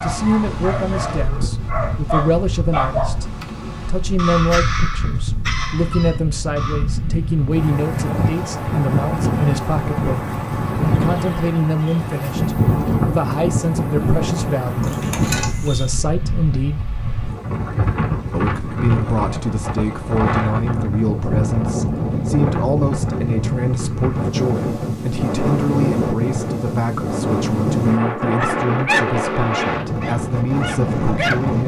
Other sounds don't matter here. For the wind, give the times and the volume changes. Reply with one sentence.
The wind can be heard from 0.0 to 31.6 s, getting louder.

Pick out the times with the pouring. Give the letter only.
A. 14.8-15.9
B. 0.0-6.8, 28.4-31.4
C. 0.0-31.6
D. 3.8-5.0
A.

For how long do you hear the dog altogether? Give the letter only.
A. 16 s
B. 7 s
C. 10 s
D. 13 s
C.